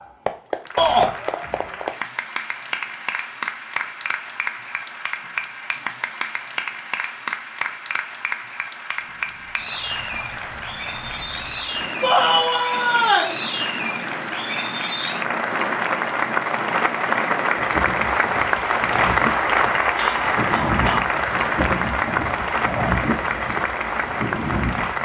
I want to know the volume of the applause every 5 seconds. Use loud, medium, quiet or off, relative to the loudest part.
medium, medium, medium, loud, loud.